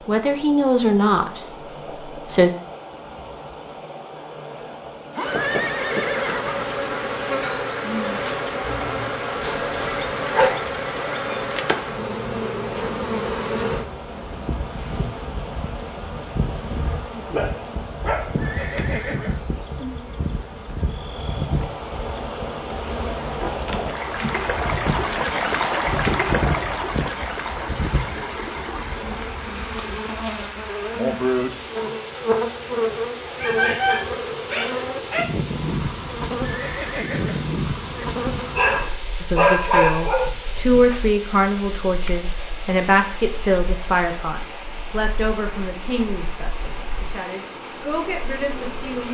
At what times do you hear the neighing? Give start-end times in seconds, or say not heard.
5.2-6.7, 18.4-19.4, 36.4-38.0.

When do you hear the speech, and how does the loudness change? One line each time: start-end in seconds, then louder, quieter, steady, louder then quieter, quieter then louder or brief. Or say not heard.
0.1-2.5 brief
39.2-49.0 quieter.